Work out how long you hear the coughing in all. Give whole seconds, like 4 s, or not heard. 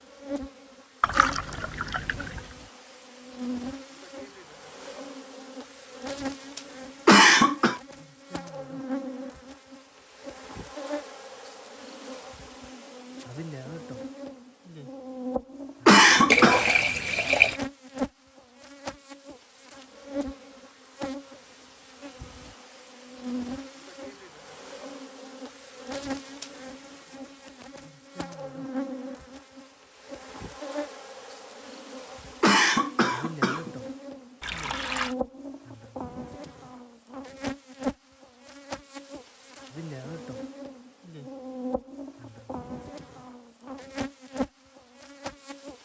3 s.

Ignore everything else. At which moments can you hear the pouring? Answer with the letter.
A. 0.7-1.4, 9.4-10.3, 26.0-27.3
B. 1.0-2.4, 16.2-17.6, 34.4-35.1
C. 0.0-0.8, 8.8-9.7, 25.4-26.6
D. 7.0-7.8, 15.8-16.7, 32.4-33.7
B.